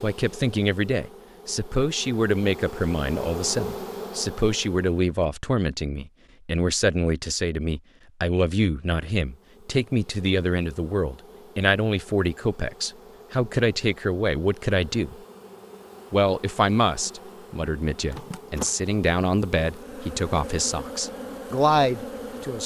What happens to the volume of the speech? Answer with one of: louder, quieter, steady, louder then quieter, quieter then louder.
steady.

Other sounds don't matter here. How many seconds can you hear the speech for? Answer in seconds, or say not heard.
22 s.